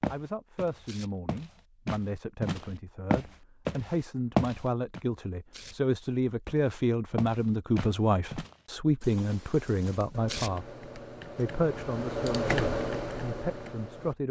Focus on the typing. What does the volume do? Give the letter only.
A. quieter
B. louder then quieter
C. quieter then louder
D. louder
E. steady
B.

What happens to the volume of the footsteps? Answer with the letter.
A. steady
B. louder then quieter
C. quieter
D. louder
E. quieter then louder
B.